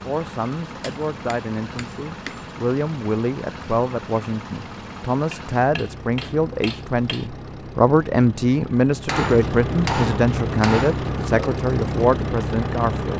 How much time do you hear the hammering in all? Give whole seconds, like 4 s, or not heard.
6 s.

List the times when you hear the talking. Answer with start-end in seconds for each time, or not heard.
0.0-13.1.